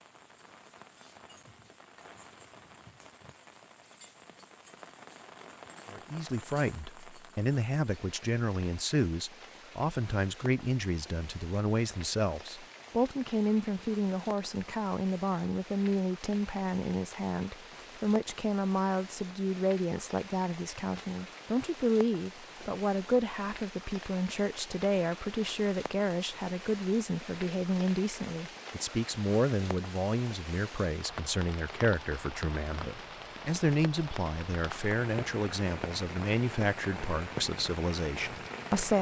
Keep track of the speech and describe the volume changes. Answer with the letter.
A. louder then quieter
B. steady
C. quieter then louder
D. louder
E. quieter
B.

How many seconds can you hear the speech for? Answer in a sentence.
You can hear the speech for 33 seconds altogether.